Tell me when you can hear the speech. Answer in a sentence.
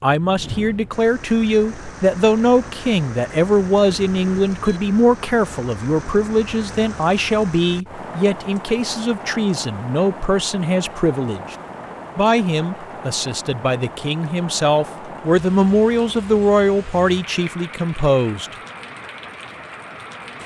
The speech can be heard from 0.0 to 11.6 s and from 12.2 to 18.6 s.